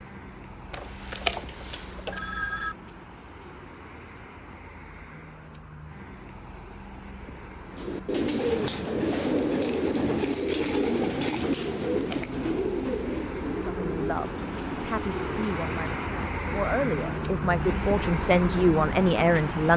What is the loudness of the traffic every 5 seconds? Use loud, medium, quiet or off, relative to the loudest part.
quiet, quiet, medium, loud.